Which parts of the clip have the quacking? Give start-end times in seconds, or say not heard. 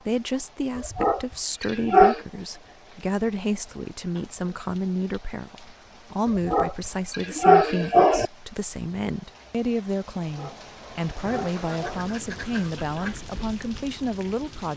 11.5-13.2.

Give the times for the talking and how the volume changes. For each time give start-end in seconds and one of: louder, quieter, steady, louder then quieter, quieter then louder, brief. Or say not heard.
0.1-14.7 steady.